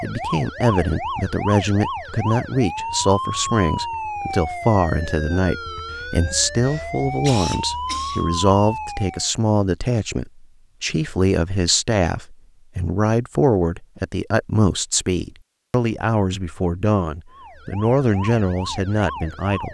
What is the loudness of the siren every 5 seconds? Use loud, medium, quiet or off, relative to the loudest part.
loud, loud, off, medium.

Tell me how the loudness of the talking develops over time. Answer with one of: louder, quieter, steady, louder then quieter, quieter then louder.
steady.